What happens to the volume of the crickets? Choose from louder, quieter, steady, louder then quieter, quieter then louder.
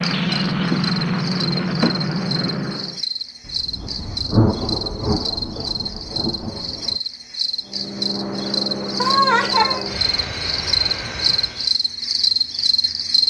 louder.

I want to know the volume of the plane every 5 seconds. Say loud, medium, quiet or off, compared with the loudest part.
loud, medium, medium.